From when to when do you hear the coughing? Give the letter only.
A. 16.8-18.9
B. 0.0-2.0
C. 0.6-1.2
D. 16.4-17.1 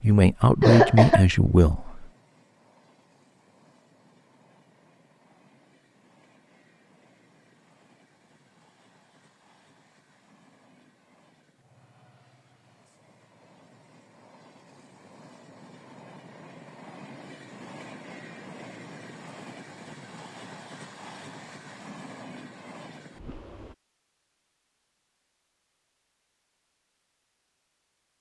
C.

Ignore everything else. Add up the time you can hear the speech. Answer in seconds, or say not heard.
2 s.